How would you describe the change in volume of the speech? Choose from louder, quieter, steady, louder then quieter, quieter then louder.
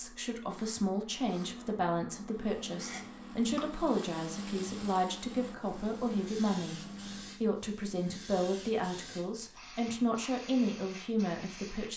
steady.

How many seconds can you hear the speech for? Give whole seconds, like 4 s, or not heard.
11 s.